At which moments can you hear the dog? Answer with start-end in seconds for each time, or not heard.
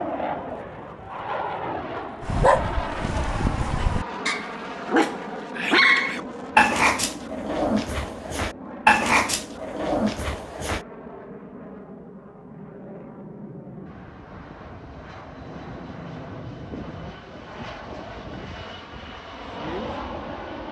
2.2-10.8.